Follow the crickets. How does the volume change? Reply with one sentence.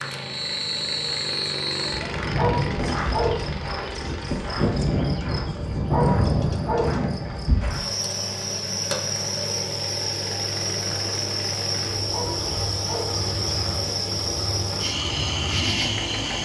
The volume of the crickets stays about the same.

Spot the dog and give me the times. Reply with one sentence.
You can hear the dog from 2.2 to 3.5 s, from 5.7 to 7.0 s and from 11.9 to 13.2 s.